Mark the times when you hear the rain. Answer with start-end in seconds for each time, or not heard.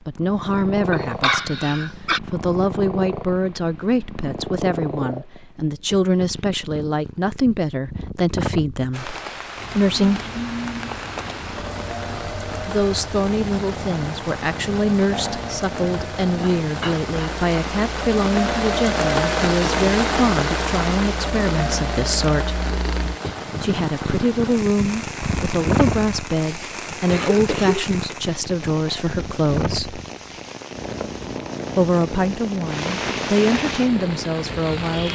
8.9-35.1.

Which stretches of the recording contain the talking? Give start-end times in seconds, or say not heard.
0.1-9.2, 9.8-10.3, 12.7-22.6, 23.6-30.0, 31.8-35.1.